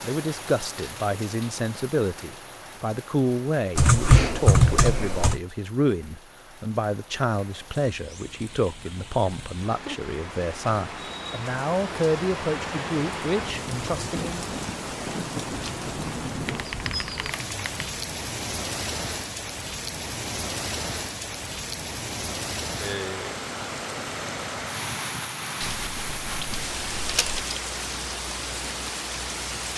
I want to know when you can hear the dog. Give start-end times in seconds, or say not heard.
not heard.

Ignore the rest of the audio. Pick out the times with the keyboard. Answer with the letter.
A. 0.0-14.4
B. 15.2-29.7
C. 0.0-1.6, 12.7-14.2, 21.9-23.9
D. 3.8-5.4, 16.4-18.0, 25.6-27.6
D.